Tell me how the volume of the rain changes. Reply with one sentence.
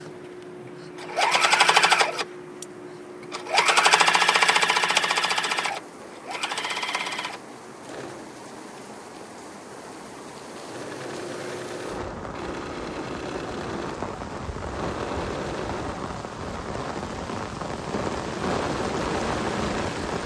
The loudness of the rain goes up.